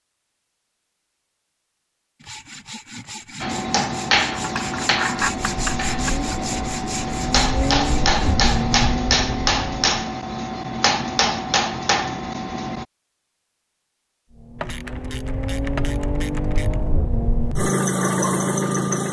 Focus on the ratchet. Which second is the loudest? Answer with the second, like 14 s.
5 s.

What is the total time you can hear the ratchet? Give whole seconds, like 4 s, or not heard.
4 s.